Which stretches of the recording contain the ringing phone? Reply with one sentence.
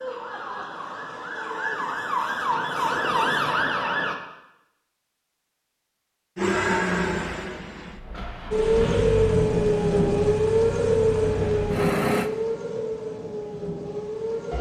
The ringing phone can't be heard in this clip.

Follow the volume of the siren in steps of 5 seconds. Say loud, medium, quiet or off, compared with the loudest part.
medium, loud, loud.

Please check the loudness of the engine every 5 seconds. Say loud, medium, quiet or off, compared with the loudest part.
off, loud, loud.